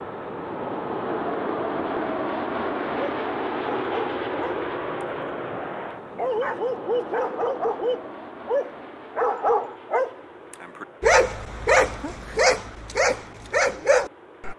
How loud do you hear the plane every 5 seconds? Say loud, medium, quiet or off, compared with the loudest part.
loud, medium, quiet.